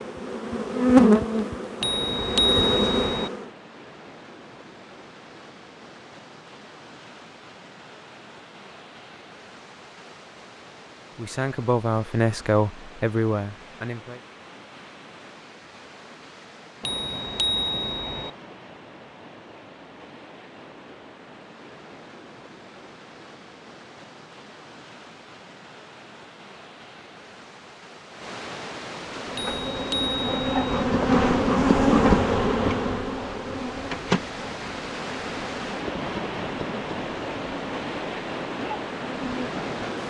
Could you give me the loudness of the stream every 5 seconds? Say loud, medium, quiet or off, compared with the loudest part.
quiet, quiet, quiet, quiet, quiet, medium, medium, loud.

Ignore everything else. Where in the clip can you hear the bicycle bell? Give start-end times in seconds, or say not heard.
1.8-3.3, 16.8-18.3, 29.4-30.6.